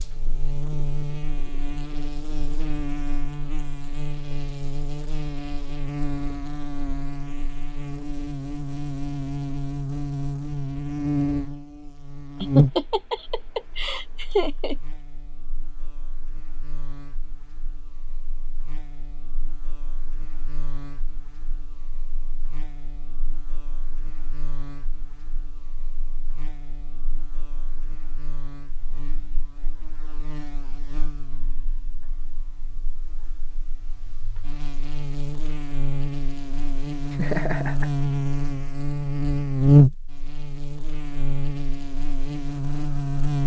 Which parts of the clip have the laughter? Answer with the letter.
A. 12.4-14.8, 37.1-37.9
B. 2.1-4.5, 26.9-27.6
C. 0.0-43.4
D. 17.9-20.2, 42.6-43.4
A.